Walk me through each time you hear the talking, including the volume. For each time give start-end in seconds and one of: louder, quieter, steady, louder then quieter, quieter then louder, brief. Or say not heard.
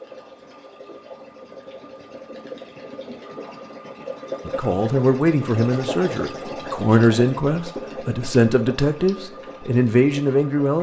4.5-10.7 steady.